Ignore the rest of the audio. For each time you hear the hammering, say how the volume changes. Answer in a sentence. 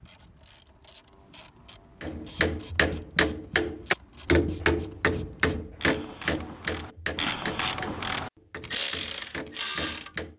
You can hear the hammering from 2.0 to 10.3 s, getting quieter.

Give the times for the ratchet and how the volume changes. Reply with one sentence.
You can hear the ratchet from 0.0 to 10.1 s, getting louder.